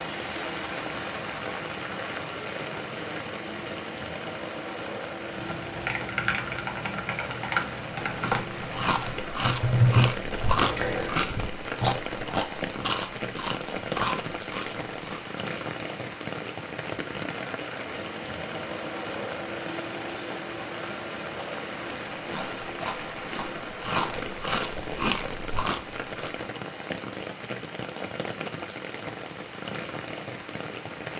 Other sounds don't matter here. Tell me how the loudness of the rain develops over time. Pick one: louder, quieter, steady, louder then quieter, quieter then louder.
steady.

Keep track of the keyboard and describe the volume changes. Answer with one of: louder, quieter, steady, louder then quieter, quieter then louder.
louder then quieter.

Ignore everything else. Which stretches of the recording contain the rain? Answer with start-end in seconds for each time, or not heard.
0.0-31.1.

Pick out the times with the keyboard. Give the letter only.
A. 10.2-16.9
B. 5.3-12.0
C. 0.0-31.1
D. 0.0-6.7
B.